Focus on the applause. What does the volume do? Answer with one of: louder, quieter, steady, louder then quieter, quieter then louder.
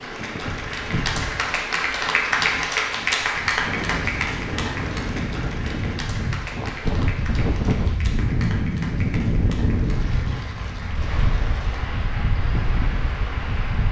quieter.